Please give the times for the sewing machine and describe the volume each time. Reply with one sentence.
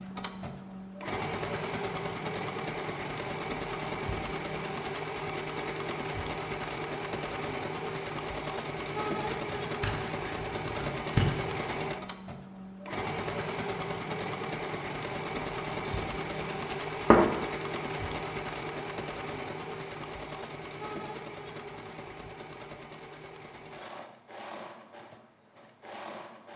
You can hear the sewing machine from 0.0 to 26.5 s, getting quieter.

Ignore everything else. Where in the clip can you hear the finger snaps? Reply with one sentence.
The finger snaps can't be heard in this clip.